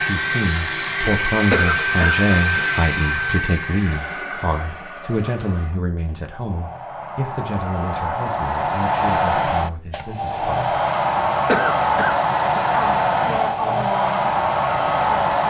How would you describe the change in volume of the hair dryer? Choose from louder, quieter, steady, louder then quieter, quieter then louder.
quieter then louder.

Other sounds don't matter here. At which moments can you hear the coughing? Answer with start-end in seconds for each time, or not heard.
1.5-2.8, 11.4-12.7.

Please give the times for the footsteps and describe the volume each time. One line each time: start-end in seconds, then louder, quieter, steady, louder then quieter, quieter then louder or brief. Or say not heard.
not heard.